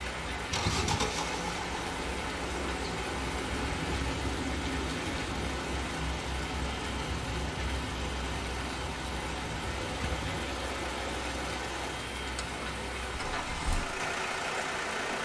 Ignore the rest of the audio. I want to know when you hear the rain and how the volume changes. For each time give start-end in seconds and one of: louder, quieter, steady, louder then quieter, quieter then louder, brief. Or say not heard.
0.0-15.2 steady.